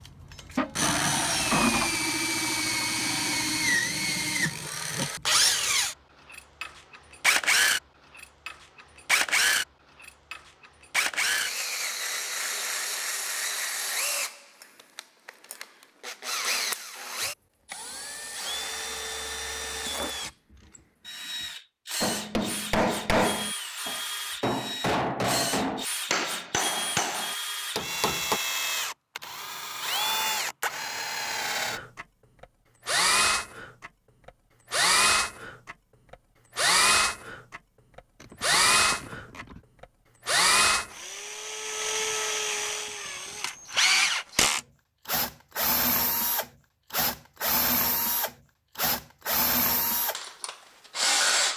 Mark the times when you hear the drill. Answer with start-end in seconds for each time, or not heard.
0.1-51.5.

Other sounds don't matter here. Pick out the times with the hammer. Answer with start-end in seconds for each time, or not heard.
22.0-28.4.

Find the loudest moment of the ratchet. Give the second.
2 s.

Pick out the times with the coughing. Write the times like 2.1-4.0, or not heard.
not heard.